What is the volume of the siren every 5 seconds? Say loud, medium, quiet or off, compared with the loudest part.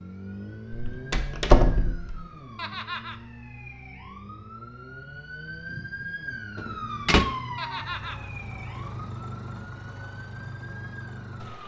medium, loud, medium.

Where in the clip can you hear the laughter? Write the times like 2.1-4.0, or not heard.
2.5-3.2, 7.5-8.3.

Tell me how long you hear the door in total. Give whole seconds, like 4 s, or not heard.
2 s.